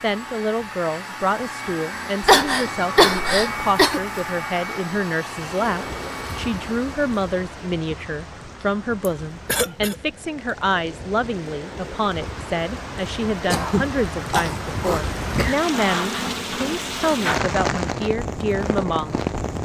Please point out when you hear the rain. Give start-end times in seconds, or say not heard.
5.2-19.6.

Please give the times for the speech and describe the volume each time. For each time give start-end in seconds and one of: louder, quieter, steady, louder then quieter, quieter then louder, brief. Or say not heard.
0.0-19.1 steady.